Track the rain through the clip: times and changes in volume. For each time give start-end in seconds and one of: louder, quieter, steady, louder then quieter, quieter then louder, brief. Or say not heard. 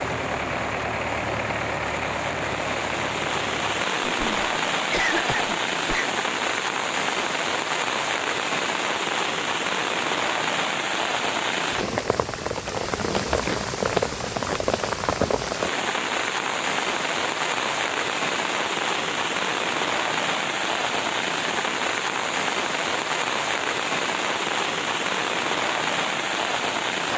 0.0-27.1 steady.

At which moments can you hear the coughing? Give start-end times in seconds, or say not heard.
4.0-6.0.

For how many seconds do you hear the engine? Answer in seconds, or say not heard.
4 s.